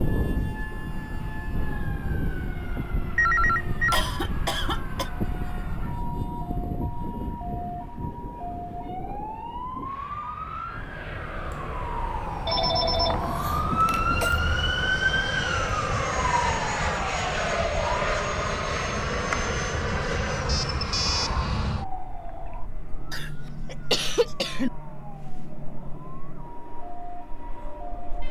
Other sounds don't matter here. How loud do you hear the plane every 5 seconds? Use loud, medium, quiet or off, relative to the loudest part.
medium, medium, medium, loud, medium, quiet.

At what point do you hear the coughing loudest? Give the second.
24 s.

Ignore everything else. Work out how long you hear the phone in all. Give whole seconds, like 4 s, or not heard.
4 s.